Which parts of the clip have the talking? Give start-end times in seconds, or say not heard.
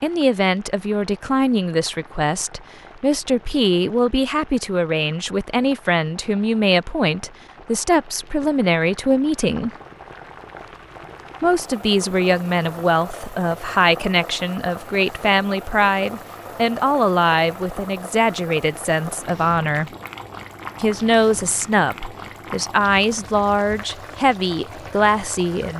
0.0-9.7, 11.4-19.9, 20.8-25.7.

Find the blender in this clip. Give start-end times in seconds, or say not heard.
not heard.